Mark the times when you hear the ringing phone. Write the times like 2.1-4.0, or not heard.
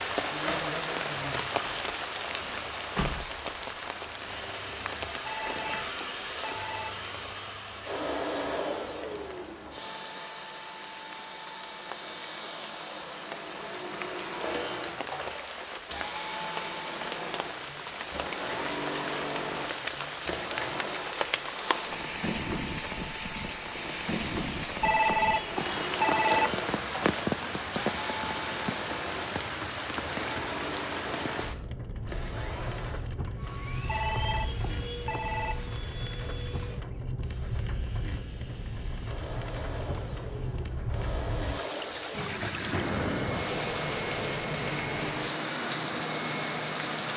5.2-6.9, 24.8-26.5, 33.9-35.5.